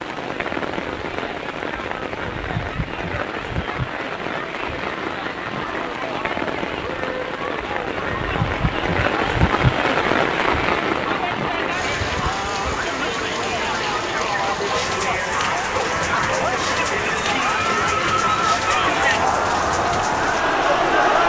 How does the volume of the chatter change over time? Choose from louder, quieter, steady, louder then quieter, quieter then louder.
louder.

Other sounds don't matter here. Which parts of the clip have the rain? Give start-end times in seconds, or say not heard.
0.0-21.2.